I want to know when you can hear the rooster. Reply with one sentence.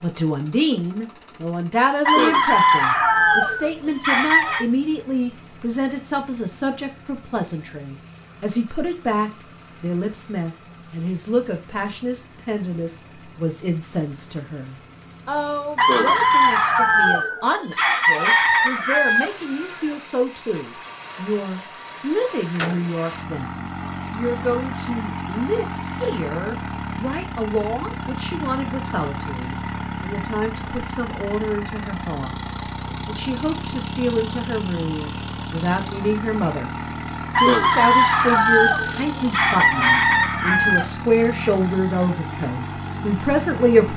The rooster can be heard from 2.0 to 4.7 s, from 15.8 to 19.3 s and from 37.4 to 40.9 s.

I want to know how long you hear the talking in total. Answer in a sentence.
The talking can be heard for 43 seconds in total.